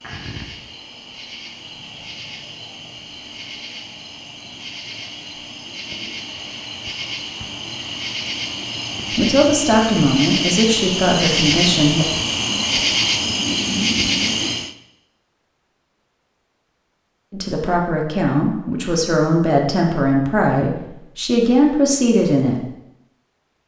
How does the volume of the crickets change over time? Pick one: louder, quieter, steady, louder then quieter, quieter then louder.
louder.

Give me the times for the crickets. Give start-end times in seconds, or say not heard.
0.0-14.8.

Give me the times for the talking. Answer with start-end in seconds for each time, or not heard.
9.1-12.1, 17.3-22.6.